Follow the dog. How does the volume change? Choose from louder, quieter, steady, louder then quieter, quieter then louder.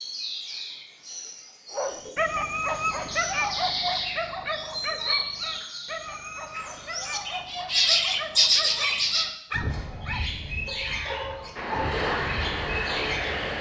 quieter.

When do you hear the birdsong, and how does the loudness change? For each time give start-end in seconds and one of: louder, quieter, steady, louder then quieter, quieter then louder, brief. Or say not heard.
0.0-13.5 louder then quieter.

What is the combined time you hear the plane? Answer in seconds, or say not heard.
2 s.